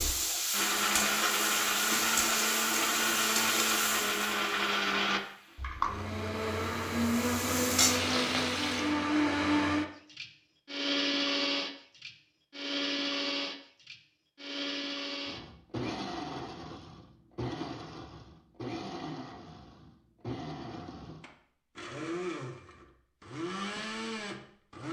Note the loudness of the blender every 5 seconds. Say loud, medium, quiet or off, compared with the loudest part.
loud, loud, loud, medium, medium.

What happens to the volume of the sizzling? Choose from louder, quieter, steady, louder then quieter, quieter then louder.
quieter then louder.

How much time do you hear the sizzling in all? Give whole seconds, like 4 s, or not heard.
9 s.